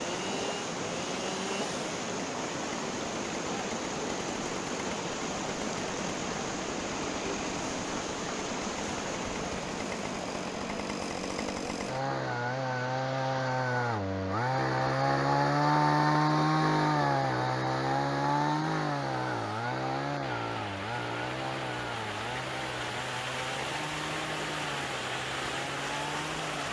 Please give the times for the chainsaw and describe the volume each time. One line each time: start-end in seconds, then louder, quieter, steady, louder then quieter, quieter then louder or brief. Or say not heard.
0.0-26.6 louder then quieter.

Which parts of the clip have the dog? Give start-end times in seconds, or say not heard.
not heard.